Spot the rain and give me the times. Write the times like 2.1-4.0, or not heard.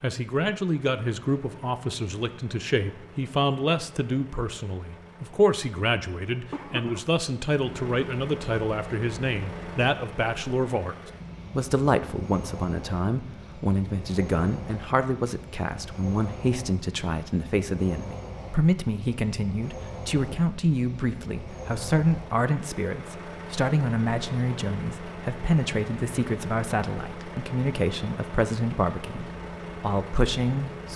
not heard.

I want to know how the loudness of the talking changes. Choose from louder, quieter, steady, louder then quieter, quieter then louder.
steady.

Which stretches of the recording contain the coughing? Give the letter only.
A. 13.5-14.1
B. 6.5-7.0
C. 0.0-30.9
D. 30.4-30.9
B.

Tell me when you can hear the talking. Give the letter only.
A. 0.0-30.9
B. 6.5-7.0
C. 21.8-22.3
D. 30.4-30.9
A.